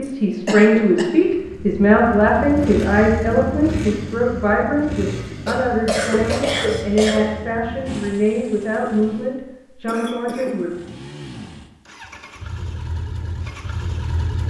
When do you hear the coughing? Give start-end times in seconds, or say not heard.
0.0-1.1, 5.5-7.2, 9.8-10.6.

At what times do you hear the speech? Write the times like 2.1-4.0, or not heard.
0.0-10.8.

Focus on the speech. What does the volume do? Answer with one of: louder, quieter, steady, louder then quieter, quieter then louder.
quieter.